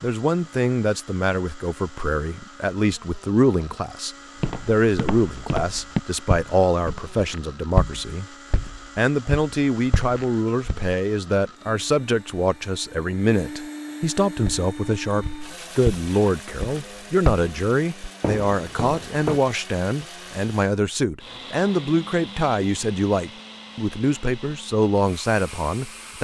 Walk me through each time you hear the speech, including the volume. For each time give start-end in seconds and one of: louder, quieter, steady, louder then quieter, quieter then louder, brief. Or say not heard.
0.0-26.2 steady.